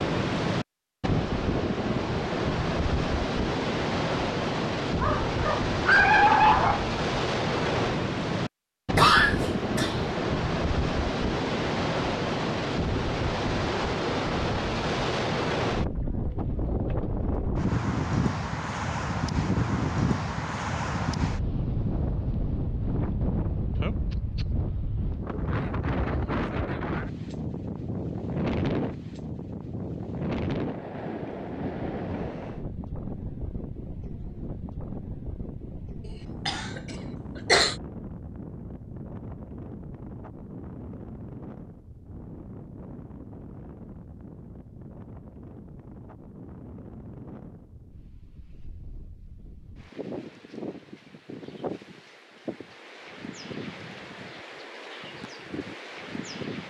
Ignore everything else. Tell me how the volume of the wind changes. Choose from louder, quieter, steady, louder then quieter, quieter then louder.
quieter.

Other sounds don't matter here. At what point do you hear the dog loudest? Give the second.
6 s.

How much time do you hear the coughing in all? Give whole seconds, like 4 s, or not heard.
2 s.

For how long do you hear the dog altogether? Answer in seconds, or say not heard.
2 s.